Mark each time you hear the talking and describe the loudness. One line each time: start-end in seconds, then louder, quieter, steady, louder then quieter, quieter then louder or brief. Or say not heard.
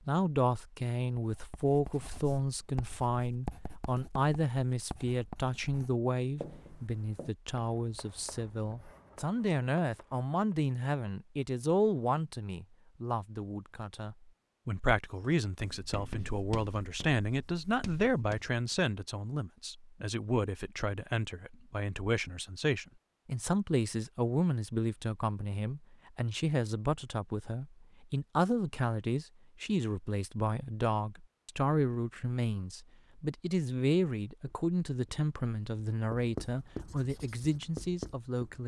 0.1-38.6 steady.